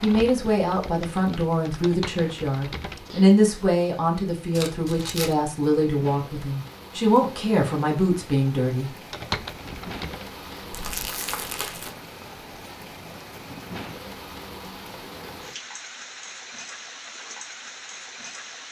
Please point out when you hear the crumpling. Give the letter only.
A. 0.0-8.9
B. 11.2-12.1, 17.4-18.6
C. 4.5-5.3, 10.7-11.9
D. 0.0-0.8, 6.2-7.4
C.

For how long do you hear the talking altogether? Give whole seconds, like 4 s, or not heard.
9 s.